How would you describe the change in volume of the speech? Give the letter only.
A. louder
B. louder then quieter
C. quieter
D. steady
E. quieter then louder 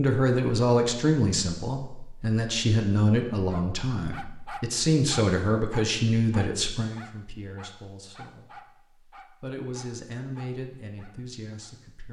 E.